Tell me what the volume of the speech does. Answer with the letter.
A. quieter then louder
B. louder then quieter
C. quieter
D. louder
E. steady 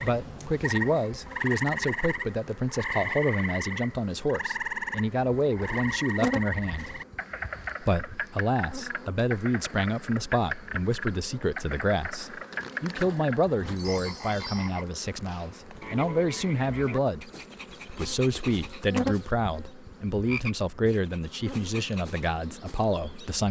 E.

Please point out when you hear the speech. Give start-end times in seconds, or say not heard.
0.0-7.0, 7.8-23.4.